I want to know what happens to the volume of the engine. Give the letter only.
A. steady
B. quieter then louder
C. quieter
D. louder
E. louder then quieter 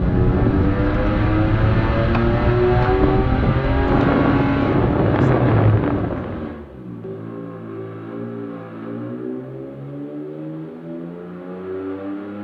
C.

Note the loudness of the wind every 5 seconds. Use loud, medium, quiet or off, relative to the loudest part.
loud, loud, off.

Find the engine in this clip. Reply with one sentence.
You can hear the engine from 0.0 to 12.3 s.